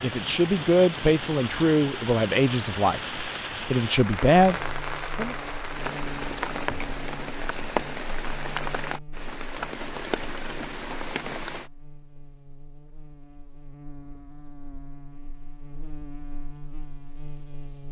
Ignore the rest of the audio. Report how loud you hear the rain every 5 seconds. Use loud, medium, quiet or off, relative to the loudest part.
loud, loud, loud, off.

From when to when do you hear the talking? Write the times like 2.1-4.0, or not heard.
0.0-5.3.